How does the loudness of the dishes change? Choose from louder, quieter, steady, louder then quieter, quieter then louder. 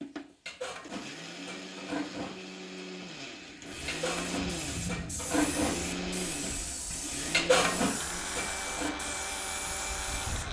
louder.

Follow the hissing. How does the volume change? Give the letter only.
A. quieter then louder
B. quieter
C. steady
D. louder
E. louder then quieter
C.